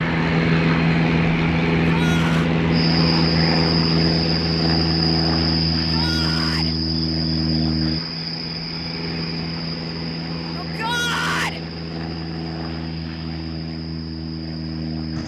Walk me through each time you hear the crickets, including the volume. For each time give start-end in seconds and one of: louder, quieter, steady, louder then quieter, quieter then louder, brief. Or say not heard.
2.7-15.2 quieter.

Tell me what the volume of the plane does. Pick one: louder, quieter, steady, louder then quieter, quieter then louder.
quieter.